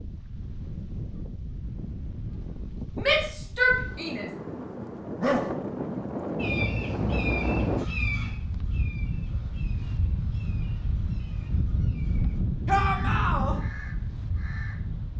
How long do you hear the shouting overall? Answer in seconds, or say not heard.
2 s.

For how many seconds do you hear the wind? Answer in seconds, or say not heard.
15 s.